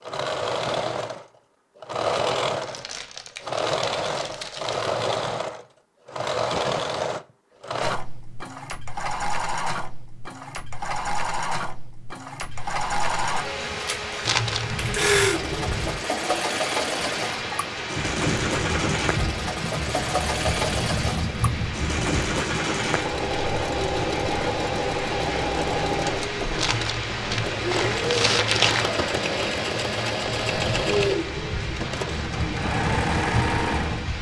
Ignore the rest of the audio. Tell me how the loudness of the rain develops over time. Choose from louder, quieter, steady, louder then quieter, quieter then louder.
steady.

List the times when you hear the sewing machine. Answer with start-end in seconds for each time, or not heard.
0.0-34.1.